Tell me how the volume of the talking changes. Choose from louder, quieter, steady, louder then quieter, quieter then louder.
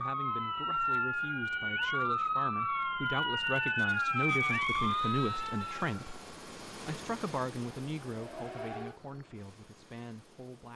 louder then quieter.